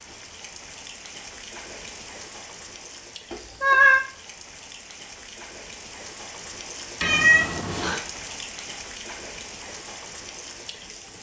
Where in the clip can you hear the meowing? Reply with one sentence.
The meowing can be heard from 3.3 to 4.0 s and from 7.0 to 8.0 s.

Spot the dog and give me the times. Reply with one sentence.
The dog can't be heard in this clip.